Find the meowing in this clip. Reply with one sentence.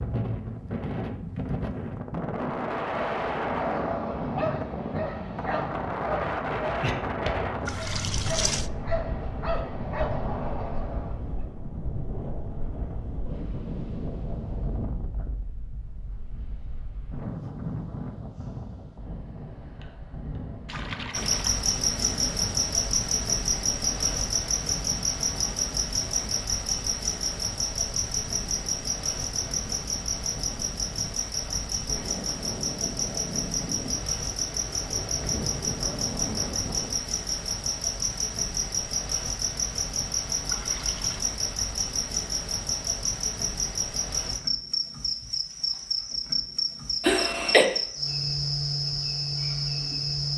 You can't hear the meowing here.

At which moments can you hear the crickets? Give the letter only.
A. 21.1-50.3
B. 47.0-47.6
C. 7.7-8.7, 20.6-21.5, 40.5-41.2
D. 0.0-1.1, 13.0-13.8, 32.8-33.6
A.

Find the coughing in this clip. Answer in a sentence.
You can hear the coughing from 47.0 to 47.6 s.